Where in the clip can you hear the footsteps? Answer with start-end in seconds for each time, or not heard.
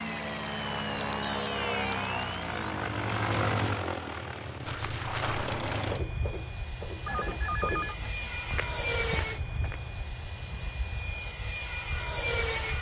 4.7-9.9.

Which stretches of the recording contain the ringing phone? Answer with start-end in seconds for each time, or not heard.
7.0-8.4.